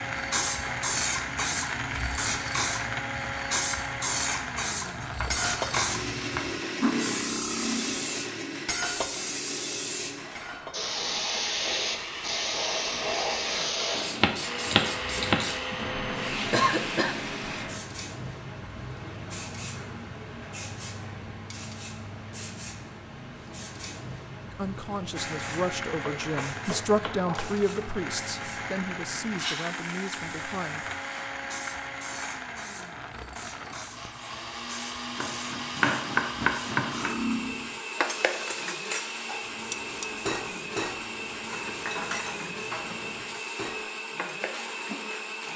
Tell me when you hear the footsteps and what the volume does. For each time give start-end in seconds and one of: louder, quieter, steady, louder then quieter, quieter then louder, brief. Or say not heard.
not heard.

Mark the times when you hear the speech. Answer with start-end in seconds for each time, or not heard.
24.4-30.9.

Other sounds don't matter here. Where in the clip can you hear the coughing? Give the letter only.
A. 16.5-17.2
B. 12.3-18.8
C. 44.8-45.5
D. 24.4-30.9
A.